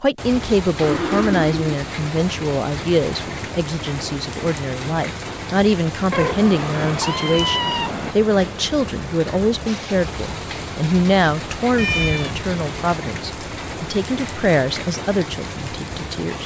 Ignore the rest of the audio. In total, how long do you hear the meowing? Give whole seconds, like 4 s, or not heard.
4 s.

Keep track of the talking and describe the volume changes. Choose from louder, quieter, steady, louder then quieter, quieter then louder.
steady.